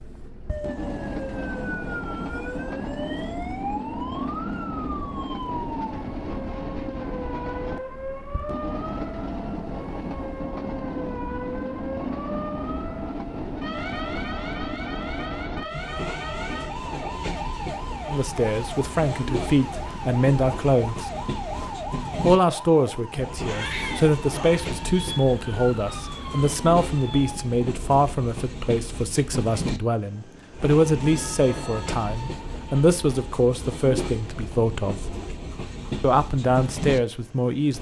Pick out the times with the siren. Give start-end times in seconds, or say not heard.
0.0-27.6.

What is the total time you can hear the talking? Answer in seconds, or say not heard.
18 s.